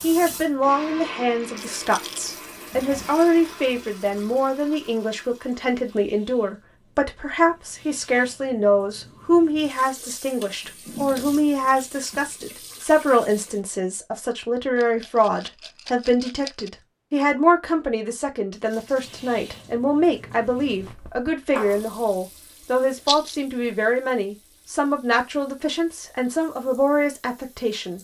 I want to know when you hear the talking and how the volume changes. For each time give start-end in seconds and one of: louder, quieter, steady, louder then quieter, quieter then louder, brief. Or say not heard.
0.0-27.9 steady.